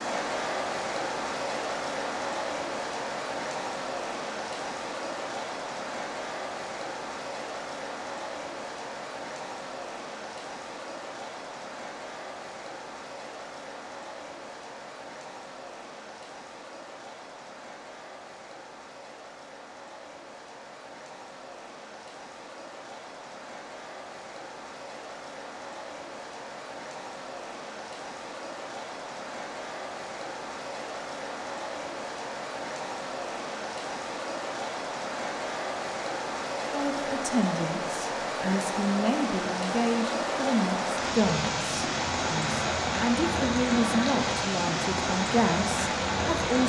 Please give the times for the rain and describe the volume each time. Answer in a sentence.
The rain can be heard from 0.0 to 46.6 s, getting quieter then louder.